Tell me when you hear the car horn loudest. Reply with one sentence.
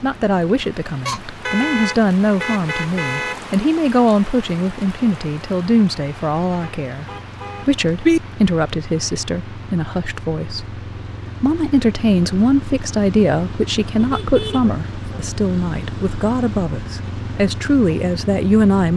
The volume of the car horn peaks at 8 seconds.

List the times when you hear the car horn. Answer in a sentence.
The car horn can be heard from 1.1 to 3.4 s, from 6.6 to 8.2 s and from 13.9 to 15.2 s.